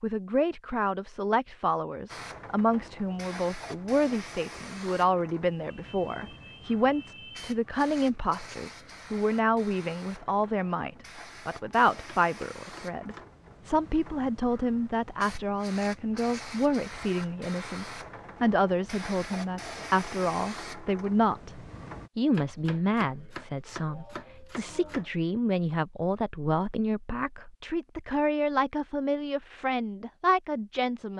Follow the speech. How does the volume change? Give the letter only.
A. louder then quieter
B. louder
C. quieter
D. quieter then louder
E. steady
E.